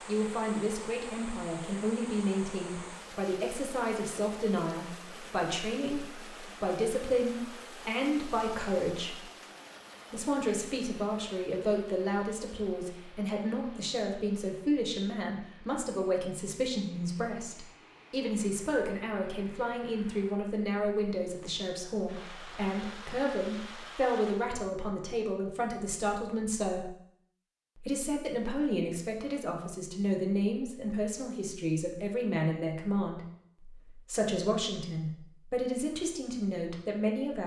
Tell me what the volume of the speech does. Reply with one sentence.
The loudness of the speech stays about the same.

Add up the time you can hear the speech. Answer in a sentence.
The speech can be heard for 36 seconds in total.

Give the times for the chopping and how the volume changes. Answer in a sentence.
The chopping can't be heard in this clip.